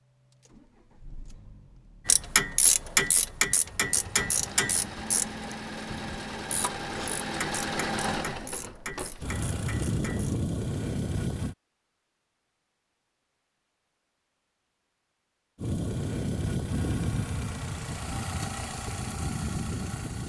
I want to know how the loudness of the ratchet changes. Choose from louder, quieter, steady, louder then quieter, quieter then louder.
quieter.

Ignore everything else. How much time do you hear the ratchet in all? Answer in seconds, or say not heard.
8 s.